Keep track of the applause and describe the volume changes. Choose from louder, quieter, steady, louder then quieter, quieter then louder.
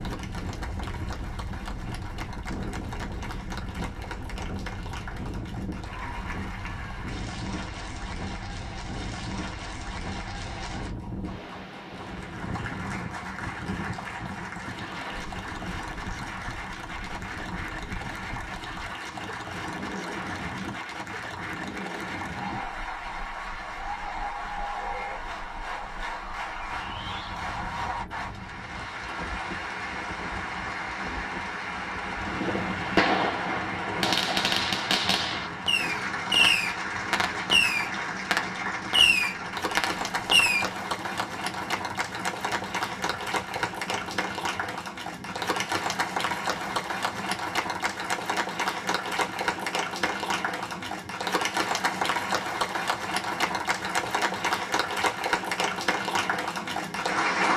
louder.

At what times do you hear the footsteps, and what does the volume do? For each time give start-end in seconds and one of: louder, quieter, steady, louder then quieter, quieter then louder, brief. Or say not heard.
not heard.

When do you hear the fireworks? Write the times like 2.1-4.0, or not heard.
32.2-40.6.